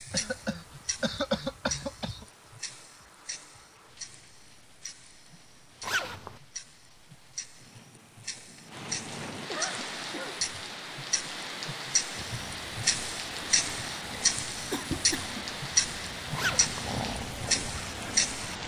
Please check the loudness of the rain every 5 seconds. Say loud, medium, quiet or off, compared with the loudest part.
quiet, medium, loud, loud.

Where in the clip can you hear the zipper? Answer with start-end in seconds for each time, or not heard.
5.8-6.4, 16.3-16.9.